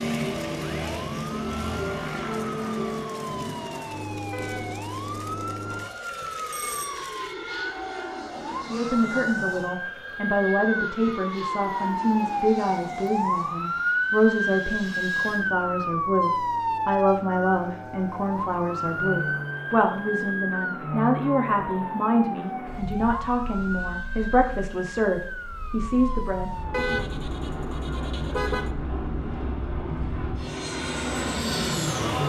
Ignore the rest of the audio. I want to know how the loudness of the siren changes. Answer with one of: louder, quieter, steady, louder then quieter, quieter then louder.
louder then quieter.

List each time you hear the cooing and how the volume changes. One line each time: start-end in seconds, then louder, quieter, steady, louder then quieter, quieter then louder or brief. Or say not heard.
not heard.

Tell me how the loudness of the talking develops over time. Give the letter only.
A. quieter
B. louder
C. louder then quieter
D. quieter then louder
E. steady
E.